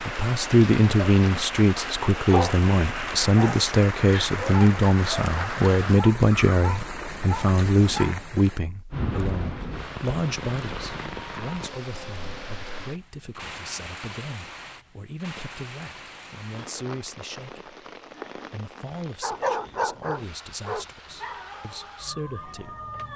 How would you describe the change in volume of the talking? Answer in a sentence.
The loudness of the talking goes down.